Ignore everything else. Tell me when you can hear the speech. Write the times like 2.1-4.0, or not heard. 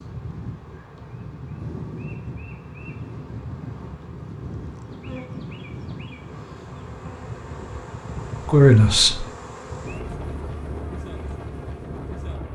8.4-9.2.